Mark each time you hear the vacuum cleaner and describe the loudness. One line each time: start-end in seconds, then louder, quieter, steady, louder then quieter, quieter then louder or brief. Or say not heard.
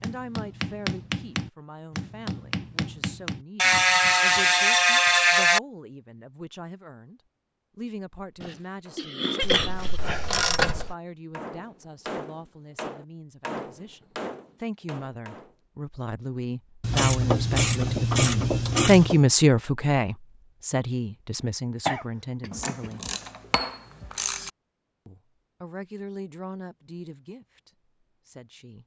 not heard.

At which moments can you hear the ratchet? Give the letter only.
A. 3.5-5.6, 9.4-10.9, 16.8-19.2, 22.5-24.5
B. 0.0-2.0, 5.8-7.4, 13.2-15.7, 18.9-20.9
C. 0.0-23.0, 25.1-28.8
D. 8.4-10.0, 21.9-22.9
A.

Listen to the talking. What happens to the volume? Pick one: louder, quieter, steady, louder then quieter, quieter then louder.
louder then quieter.